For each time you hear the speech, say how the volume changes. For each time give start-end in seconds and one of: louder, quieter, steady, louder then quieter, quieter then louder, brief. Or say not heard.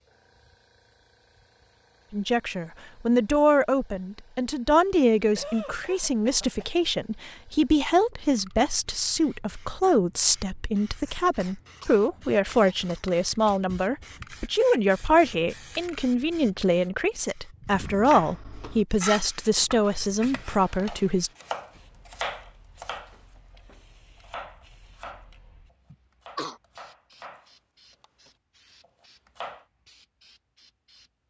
2.1-21.3 steady.